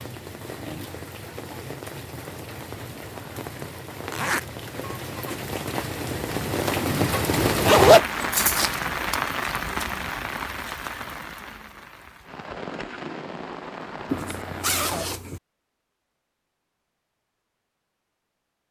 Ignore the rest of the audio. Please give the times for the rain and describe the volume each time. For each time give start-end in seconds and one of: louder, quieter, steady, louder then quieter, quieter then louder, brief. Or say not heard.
0.0-15.1 louder then quieter.